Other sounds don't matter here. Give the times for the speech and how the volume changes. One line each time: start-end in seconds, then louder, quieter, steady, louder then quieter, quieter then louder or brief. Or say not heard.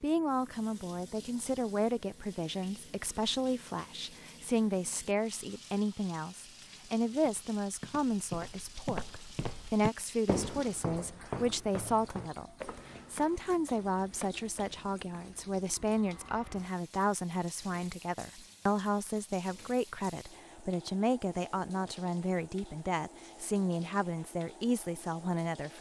0.0-25.7 steady.